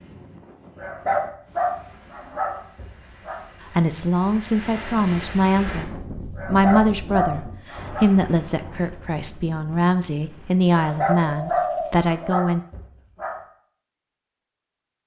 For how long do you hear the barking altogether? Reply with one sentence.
You can hear the barking for 7 seconds altogether.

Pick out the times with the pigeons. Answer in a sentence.
The pigeons can be heard from 10.8 to 12.3 s.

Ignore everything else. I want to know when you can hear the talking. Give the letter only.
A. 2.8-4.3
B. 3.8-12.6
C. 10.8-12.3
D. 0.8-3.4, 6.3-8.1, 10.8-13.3
B.